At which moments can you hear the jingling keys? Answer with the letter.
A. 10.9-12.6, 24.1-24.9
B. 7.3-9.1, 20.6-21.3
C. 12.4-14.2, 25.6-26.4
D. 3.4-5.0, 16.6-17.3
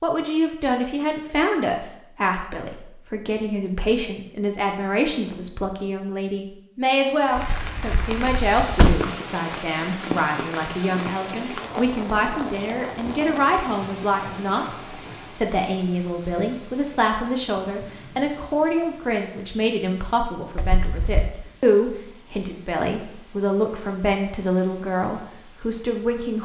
B.